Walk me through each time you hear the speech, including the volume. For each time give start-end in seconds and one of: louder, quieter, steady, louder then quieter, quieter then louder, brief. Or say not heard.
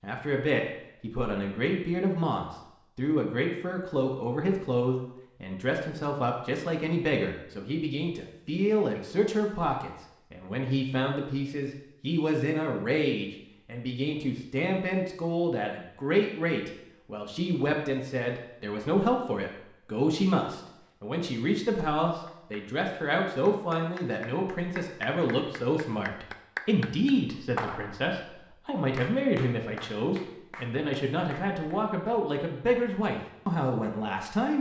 0.0-34.5 steady.